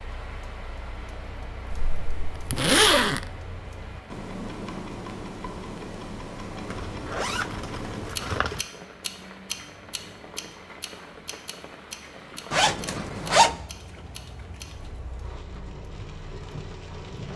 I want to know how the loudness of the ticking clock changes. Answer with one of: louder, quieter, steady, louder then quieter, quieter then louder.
louder then quieter.